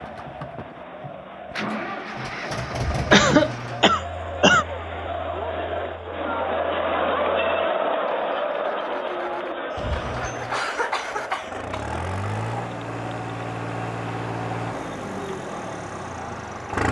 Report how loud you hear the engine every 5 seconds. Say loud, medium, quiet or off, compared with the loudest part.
loud, quiet, loud, loud.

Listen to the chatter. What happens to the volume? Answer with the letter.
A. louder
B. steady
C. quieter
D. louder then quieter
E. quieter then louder
D.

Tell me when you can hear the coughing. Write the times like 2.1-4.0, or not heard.
3.1-4.7, 9.7-12.0.